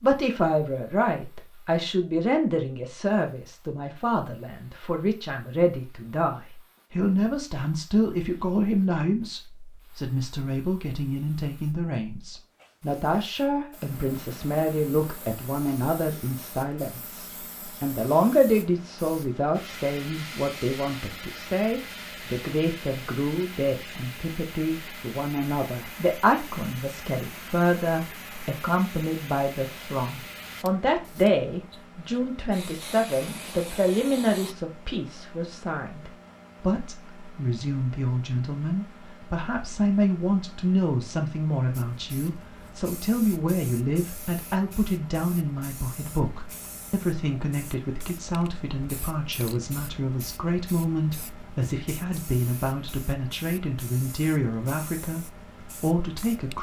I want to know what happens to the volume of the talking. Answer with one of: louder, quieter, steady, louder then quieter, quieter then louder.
steady.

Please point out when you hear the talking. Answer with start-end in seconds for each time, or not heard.
0.0-56.5.